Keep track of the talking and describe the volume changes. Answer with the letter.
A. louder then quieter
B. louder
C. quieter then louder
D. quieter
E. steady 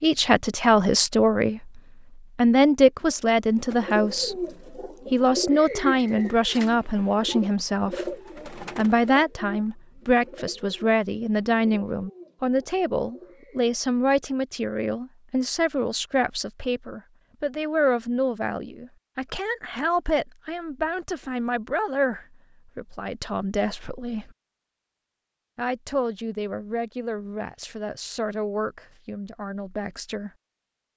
D.